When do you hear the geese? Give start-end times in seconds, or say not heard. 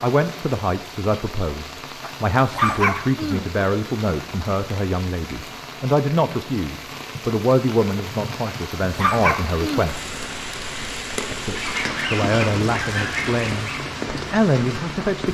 11.5-13.8.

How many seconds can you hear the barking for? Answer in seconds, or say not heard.
3 s.